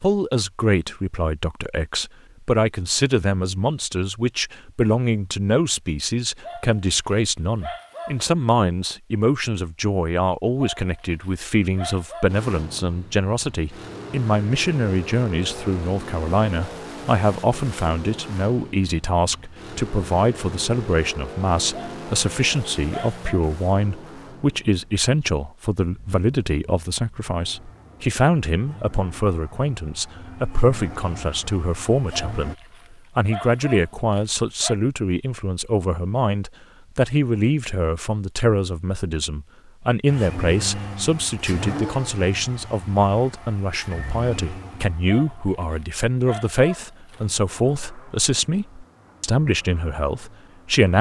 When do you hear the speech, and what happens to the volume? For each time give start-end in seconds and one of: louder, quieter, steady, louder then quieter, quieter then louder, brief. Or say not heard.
0.0-50.9 steady.